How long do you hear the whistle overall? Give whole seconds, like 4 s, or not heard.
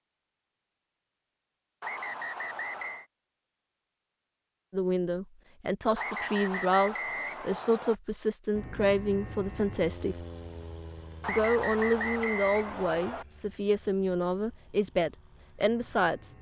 5 s.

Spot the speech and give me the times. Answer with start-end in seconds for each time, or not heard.
4.7-10.2, 11.2-16.3.